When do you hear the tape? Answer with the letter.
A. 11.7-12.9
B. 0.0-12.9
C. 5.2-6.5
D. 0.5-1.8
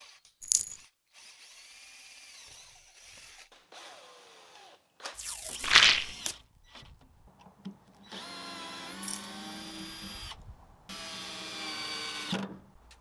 C.